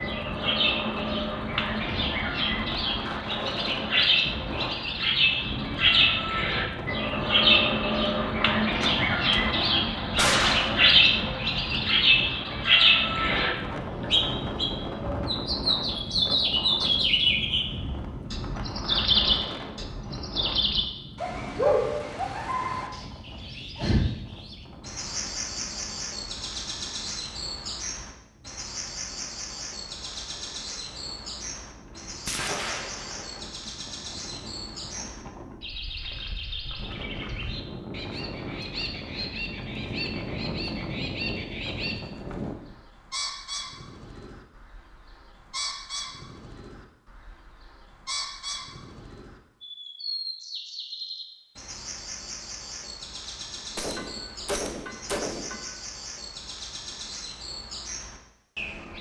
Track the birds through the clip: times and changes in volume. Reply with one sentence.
You can hear the birds from 0.0 to 58.9 s, getting quieter.